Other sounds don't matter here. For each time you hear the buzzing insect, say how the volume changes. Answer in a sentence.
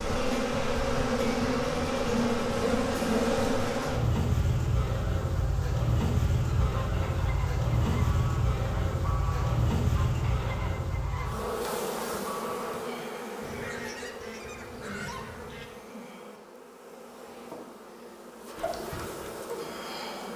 You can hear the buzzing insect from 0.0 to 20.3 s, getting quieter.